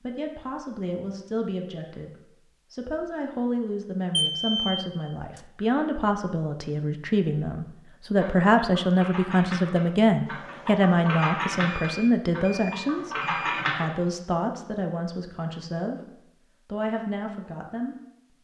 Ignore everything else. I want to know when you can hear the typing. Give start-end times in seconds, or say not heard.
8.2-13.8.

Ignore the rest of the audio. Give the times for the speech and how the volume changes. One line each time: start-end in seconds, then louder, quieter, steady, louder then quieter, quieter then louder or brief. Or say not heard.
0.0-16.0 louder then quieter
16.6-17.9 brief.